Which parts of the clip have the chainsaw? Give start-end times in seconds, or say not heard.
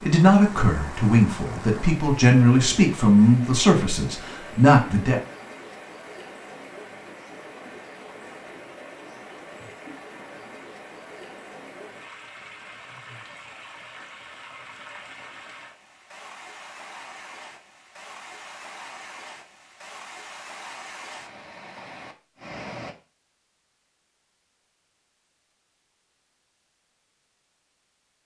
not heard.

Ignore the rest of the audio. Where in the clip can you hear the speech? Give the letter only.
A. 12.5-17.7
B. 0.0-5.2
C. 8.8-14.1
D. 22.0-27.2
B.